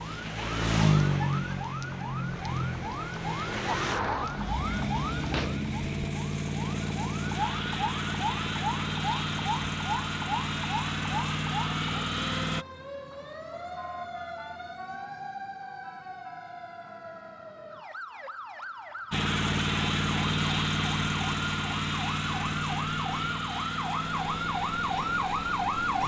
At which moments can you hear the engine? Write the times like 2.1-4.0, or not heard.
0.0-12.7, 19.1-26.0.